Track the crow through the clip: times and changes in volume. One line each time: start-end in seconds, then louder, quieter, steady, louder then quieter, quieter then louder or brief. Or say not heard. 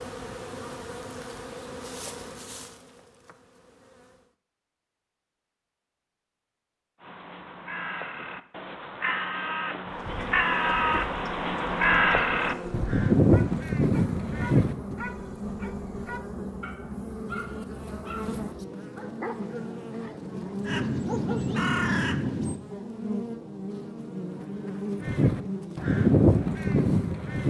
7.0-14.9 louder
20.6-22.6 brief
25.0-27.4 brief.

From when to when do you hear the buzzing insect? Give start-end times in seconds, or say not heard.
0.0-4.3, 9.8-27.2.